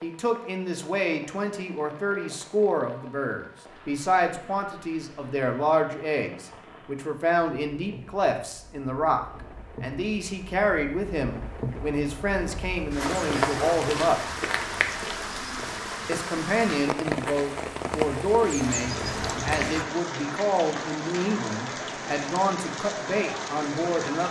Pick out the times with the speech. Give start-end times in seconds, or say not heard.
0.0-14.2, 16.1-24.2.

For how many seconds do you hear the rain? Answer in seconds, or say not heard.
24 s.